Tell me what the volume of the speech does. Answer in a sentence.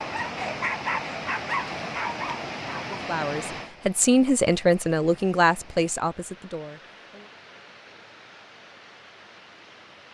The loudness of the speech goes up, then down.